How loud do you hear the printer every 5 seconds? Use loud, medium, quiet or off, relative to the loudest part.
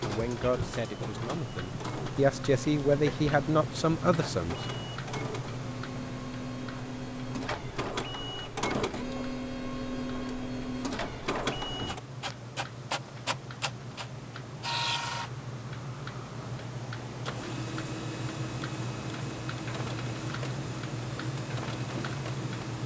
medium, loud, loud, medium, medium.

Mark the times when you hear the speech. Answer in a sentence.
The speech can be heard from 0.0 to 4.7 s.